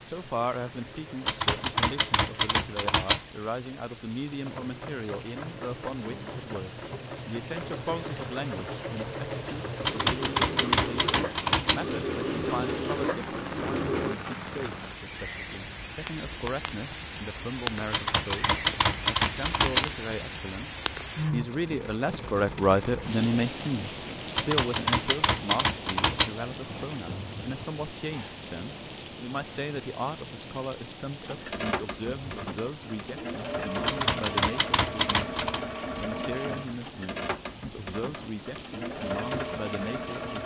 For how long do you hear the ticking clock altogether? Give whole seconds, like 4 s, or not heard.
not heard.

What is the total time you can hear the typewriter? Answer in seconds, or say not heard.
10 s.